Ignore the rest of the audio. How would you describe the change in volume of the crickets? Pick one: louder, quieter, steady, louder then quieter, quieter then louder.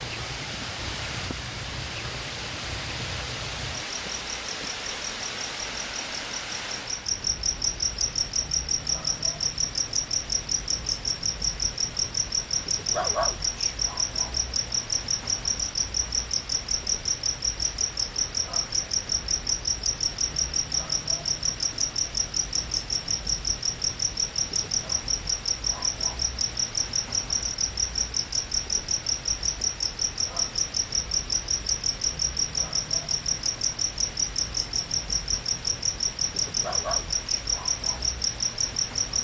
louder.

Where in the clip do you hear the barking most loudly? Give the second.
13 s.